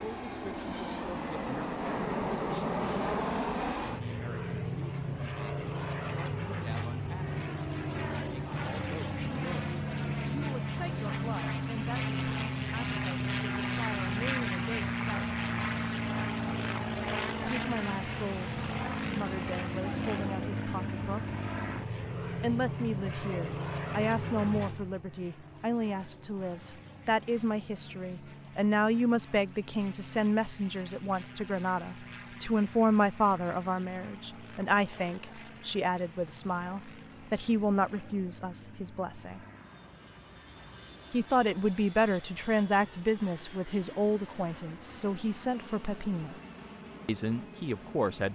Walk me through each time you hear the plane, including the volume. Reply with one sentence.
You can hear the plane from 0.0 to 48.3 s, getting quieter.